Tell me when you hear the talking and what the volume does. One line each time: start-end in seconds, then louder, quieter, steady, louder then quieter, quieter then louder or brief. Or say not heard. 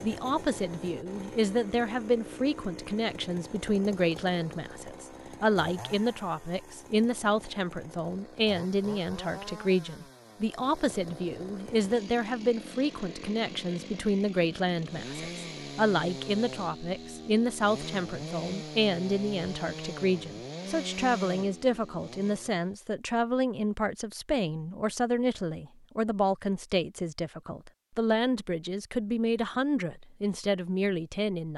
0.0-31.5 steady.